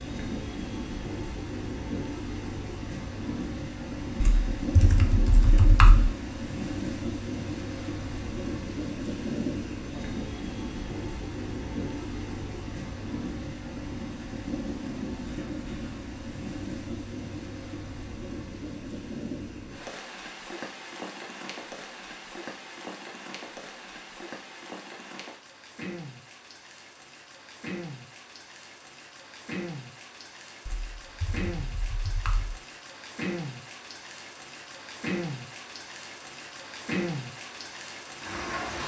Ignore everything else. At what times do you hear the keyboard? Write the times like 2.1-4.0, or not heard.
4.2-6.1, 30.6-32.5.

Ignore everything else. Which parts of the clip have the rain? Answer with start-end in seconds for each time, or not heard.
0.0-38.8.